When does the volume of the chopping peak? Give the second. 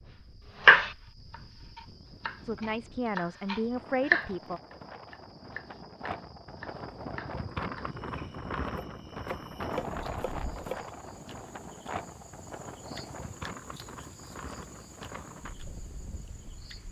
1 s.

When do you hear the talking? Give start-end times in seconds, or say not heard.
2.5-4.6.